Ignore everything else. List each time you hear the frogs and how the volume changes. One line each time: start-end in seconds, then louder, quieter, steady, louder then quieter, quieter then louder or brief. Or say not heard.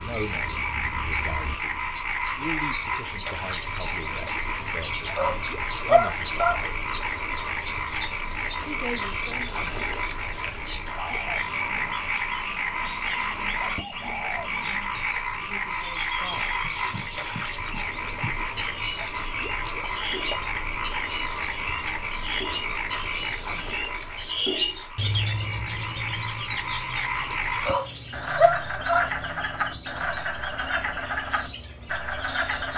0.0-32.7 steady.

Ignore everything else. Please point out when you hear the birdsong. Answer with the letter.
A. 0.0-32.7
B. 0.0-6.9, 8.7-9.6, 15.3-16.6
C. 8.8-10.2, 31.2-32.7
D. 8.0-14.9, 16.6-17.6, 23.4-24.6
A.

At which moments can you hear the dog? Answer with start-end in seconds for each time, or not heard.
5.2-6.5, 27.6-29.1.